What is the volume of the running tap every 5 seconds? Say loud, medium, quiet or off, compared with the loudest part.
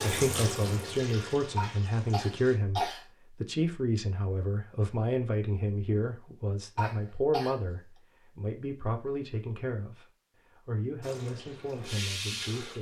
loud, off, loud.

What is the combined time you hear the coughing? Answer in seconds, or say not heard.
2 s.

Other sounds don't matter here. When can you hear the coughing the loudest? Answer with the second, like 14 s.
3 s.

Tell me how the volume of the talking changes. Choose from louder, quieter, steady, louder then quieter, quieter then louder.
quieter.